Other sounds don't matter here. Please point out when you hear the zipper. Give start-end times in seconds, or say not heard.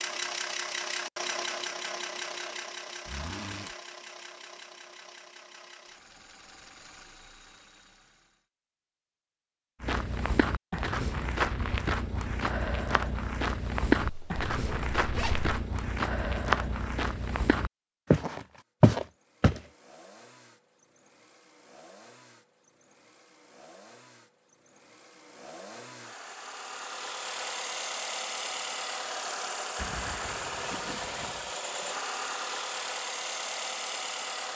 3.0-3.7, 14.0-15.5, 29.8-31.6.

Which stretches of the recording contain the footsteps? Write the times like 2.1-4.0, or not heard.
9.8-19.6.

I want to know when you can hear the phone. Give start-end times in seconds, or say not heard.
not heard.